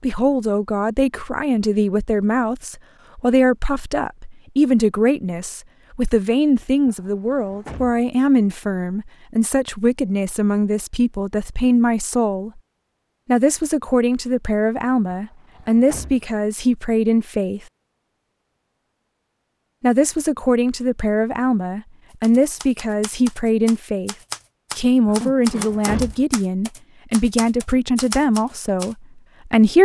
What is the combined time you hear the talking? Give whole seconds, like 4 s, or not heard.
26 s.